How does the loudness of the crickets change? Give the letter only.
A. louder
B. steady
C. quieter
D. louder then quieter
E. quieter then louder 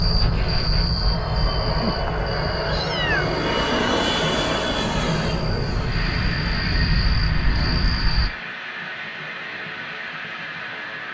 E.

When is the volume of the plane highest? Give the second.
4 s.